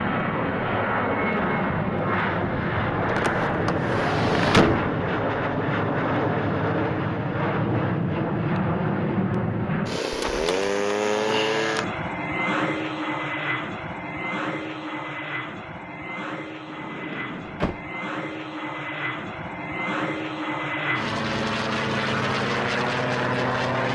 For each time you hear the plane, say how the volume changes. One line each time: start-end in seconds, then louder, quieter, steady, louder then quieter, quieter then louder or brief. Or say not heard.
0.0-23.9 quieter then louder.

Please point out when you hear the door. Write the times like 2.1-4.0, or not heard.
3.0-4.9, 10.1-10.7, 16.6-17.9.